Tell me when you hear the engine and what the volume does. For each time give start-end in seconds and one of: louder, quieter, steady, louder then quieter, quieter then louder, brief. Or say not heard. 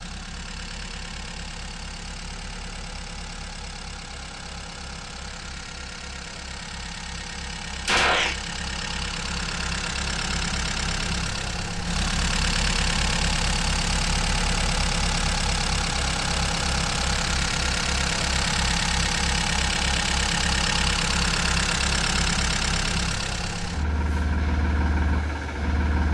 0.0-26.0 louder.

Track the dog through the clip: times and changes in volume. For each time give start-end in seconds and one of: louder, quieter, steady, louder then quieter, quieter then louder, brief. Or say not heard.
not heard.